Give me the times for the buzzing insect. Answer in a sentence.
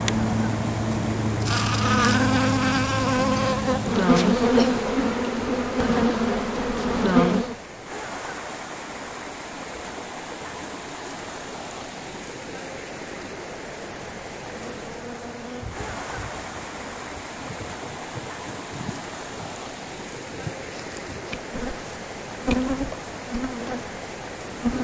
You can hear the buzzing insect from 0.0 to 7.5 s and from 14.6 to 24.7 s.